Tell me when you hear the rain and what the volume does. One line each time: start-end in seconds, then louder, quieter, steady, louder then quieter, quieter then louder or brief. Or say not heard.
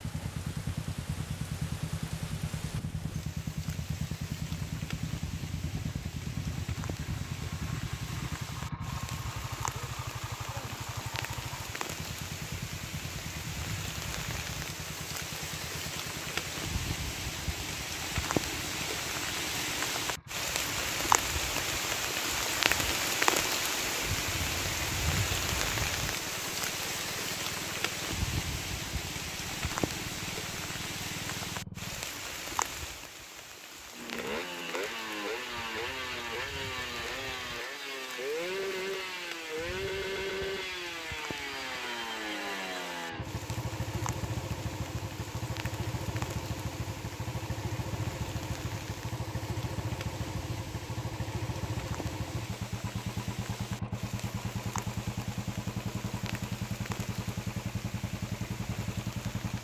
0.0-59.5 louder then quieter.